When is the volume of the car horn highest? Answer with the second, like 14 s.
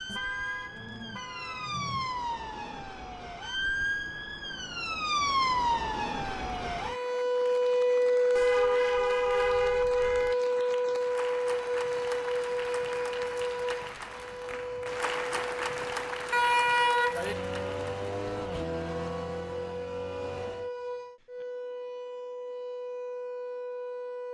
17 s.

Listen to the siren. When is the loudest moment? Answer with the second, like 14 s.
8 s.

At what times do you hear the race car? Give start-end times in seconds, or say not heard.
17.1-20.7.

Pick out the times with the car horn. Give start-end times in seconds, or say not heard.
0.1-2.1, 8.3-10.3, 16.3-17.4.